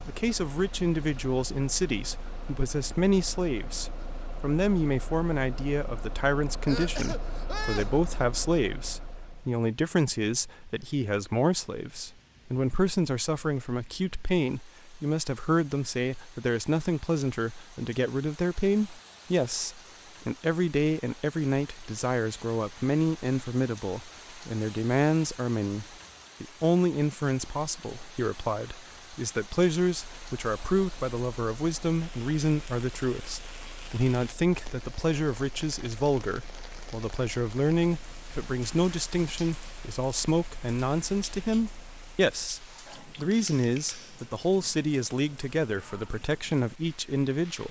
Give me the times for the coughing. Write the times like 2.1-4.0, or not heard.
6.7-8.1.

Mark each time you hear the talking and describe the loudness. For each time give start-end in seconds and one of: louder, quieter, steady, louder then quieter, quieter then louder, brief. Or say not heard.
0.1-47.6 steady.